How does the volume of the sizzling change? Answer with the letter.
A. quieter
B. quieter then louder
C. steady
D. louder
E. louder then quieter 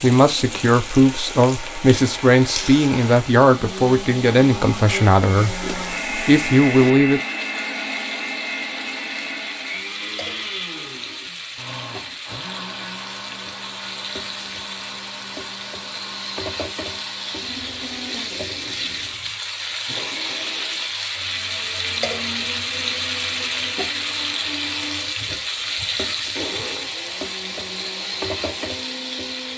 D.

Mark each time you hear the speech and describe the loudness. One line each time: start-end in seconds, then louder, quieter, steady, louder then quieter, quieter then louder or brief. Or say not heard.
0.0-7.2 steady.